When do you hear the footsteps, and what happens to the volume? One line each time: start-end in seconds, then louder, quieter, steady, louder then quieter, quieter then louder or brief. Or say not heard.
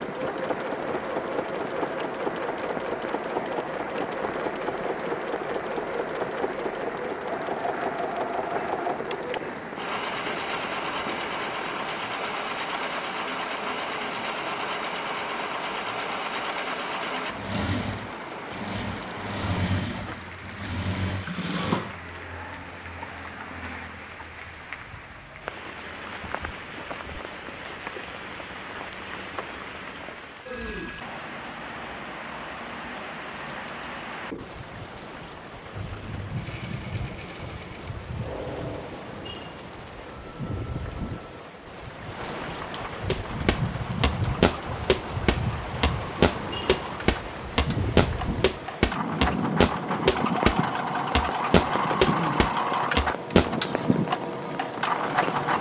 43.1-53.5 steady.